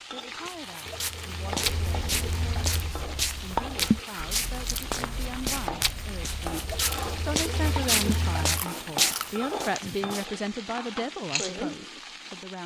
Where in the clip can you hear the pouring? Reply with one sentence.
The pouring can be heard from 0.8 to 3.0 s and from 6.7 to 8.7 s.